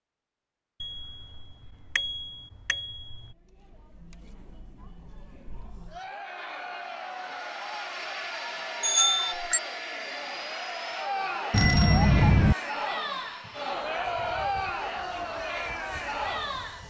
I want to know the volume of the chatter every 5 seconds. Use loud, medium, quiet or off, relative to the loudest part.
quiet, medium, loud, loud.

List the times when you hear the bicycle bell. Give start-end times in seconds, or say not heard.
0.8-3.4, 8.8-9.6, 11.5-12.6.